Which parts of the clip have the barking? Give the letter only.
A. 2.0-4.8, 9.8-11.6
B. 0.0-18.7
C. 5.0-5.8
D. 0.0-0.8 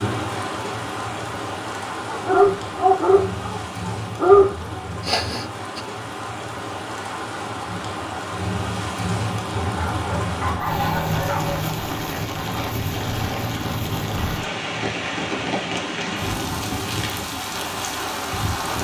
A.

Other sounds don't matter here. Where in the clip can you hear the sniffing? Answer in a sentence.
The sniffing can be heard from 5.0 to 5.8 s.